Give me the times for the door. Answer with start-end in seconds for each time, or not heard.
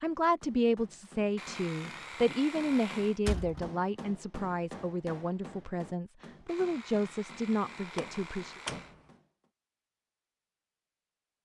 3.2-3.7, 8.0-8.9.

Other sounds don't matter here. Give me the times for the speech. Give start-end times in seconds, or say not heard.
0.0-8.6.